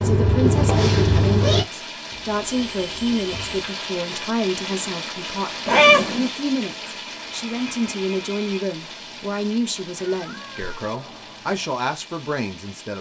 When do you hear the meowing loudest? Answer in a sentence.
The loudest moment of the meowing is at 6 seconds.